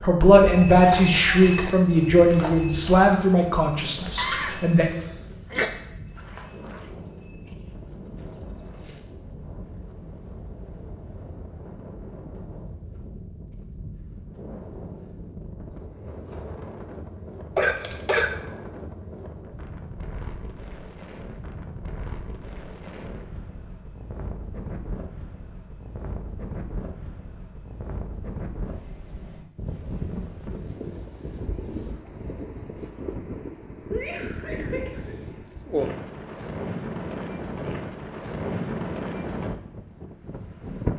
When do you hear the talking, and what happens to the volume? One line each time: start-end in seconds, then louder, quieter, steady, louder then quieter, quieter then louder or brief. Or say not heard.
0.0-4.9 quieter.